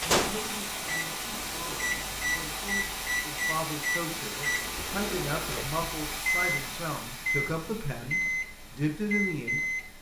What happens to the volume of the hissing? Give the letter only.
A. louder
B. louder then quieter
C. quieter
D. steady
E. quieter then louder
C.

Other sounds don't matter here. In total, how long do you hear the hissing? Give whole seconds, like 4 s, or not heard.
10 s.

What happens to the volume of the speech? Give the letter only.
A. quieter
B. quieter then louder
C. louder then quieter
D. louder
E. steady
D.